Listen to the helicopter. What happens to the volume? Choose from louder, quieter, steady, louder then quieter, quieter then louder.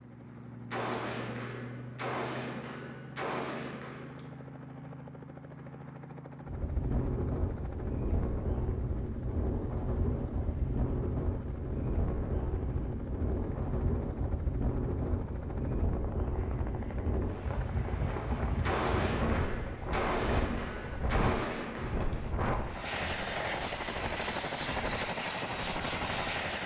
louder.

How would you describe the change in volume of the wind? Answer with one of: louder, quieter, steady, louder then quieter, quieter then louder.
steady.